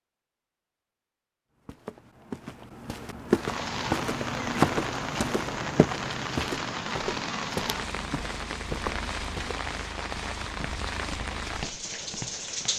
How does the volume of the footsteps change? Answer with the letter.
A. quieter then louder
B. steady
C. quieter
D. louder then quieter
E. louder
C.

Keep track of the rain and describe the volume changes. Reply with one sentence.
The loudness of the rain stays about the same.